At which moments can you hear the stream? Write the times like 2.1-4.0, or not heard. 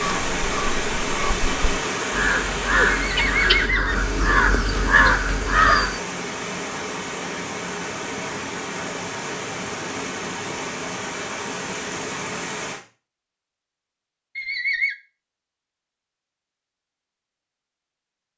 0.0-12.8.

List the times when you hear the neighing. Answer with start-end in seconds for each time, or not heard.
3.0-4.0, 14.3-14.9.